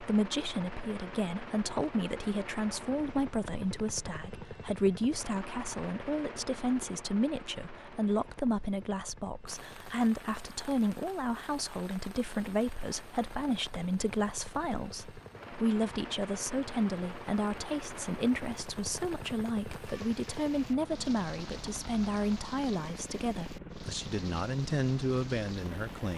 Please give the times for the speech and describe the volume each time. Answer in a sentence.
You can hear the speech from 0.0 to 26.1 s, at a steady volume.